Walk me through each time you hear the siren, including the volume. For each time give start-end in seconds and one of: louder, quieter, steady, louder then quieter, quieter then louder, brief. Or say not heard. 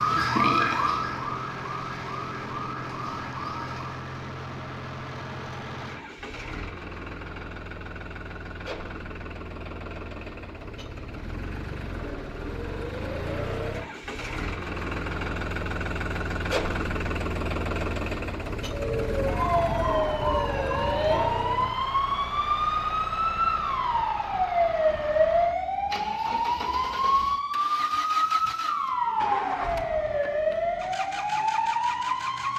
0.0-4.0 quieter
18.6-32.5 steady.